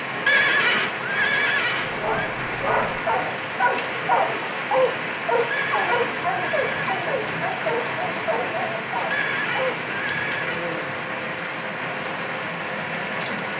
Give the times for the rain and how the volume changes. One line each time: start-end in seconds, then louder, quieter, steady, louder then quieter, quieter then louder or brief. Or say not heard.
0.0-13.5 steady.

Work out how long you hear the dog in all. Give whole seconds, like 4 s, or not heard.
8 s.